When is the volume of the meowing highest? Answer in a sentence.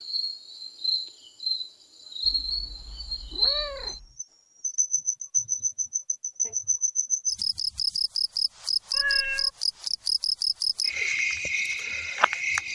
The loudest moment of the meowing is at 9 seconds.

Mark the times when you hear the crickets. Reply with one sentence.
You can hear the crickets from 0.0 to 12.7 s.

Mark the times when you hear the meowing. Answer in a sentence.
The meowing can be heard from 2.2 to 4.2 s and from 8.9 to 9.5 s.